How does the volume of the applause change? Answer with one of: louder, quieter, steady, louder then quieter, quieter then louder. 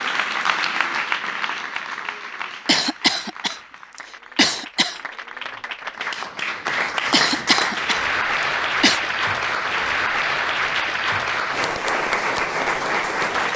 quieter then louder.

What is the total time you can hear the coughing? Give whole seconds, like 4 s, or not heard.
4 s.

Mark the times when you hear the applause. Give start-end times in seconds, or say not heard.
0.0-13.5.